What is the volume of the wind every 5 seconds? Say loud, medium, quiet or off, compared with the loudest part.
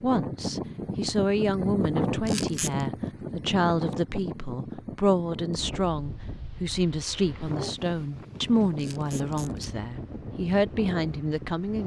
loud, medium, medium.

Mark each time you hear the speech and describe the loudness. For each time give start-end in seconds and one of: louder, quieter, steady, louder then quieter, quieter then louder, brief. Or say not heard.
0.0-11.8 steady.